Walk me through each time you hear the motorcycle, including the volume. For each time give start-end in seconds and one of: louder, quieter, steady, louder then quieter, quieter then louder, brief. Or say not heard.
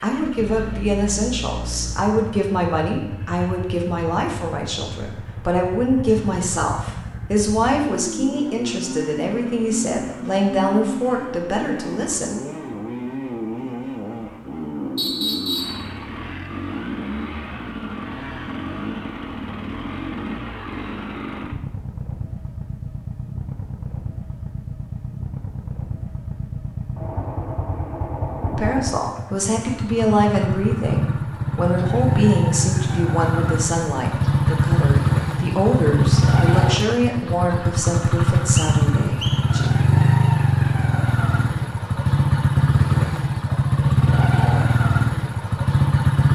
0.0-46.3 louder.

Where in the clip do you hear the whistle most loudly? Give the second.
15 s.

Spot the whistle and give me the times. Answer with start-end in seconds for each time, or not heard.
14.9-15.8, 38.1-39.5.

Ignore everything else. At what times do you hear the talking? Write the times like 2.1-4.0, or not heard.
0.0-12.3, 28.6-39.6.